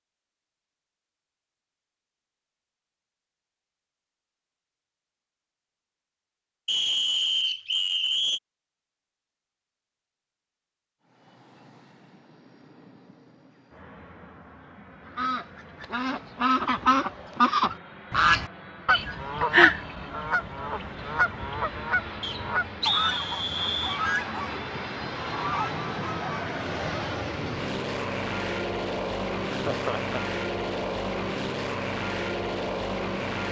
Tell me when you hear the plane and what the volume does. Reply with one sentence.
You can hear the plane from 11.0 to 33.4 s, getting louder.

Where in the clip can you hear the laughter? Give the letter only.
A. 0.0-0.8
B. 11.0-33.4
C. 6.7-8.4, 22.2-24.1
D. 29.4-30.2
D.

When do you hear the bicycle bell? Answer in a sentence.
The bicycle bell can't be heard in this clip.